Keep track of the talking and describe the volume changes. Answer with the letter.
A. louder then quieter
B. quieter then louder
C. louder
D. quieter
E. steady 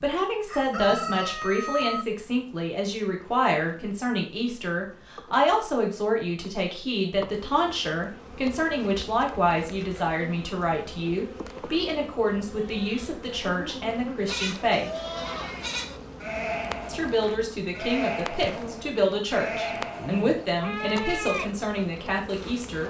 E.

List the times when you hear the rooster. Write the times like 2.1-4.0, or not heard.
0.5-2.0.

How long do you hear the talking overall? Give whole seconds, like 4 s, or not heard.
21 s.